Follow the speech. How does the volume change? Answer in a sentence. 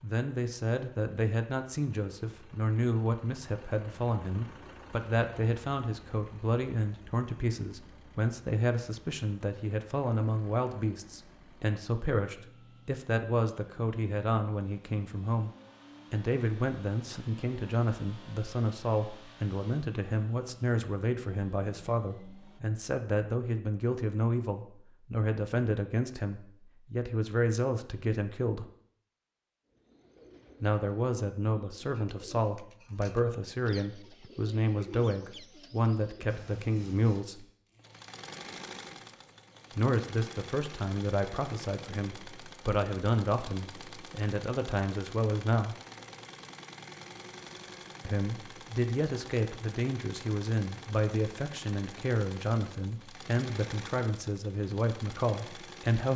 The volume of the speech stays about the same.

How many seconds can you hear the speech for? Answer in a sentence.
You can hear the speech for 49 seconds altogether.